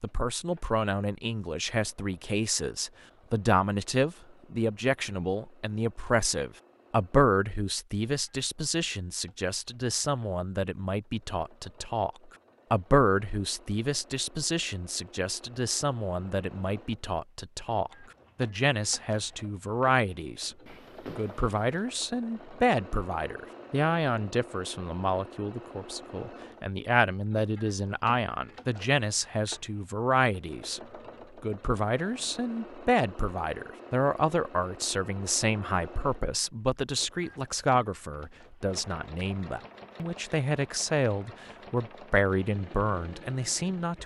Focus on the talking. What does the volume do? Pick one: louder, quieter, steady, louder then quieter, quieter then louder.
steady.